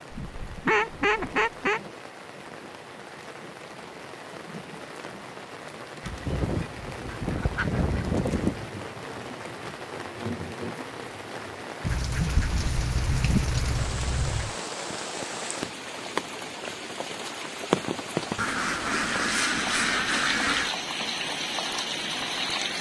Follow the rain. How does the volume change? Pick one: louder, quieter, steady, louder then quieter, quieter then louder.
louder.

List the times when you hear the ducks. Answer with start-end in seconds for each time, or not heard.
0.1-1.8, 6.0-8.7, 11.8-14.6, 18.4-20.8.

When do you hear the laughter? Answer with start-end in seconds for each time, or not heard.
not heard.